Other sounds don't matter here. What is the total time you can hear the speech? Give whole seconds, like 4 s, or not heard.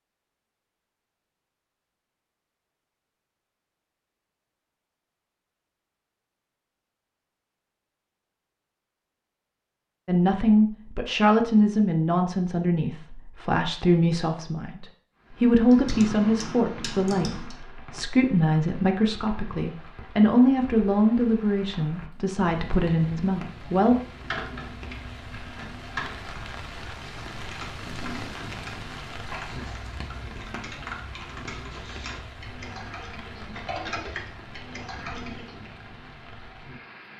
14 s.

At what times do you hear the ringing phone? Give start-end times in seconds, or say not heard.
not heard.